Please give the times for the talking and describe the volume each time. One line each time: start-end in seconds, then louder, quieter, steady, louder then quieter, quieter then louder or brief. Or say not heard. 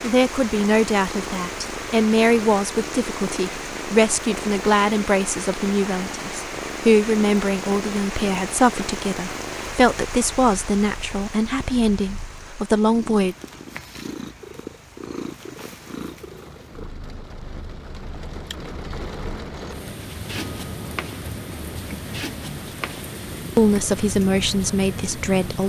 0.0-13.3 steady
23.6-25.6 brief.